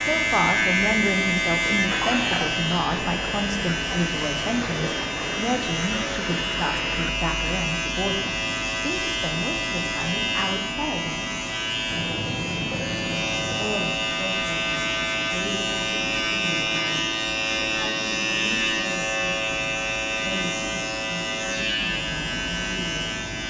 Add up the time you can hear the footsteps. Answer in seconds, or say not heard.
not heard.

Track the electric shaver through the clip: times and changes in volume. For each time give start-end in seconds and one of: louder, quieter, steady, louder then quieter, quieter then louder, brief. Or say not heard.
0.0-23.4 steady.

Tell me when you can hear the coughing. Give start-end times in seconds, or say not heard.
not heard.